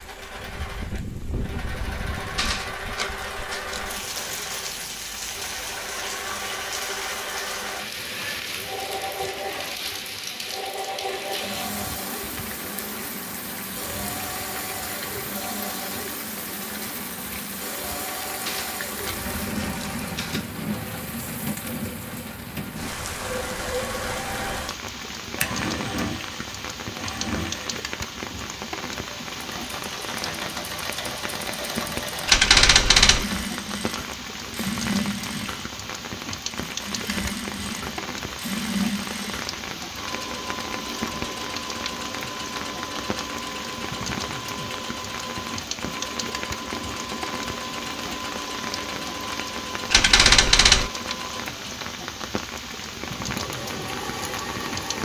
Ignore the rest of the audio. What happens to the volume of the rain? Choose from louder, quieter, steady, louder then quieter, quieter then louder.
steady.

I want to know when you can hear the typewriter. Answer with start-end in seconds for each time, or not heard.
2.4-3.9, 18.4-20.5, 32.2-33.2, 49.9-50.9.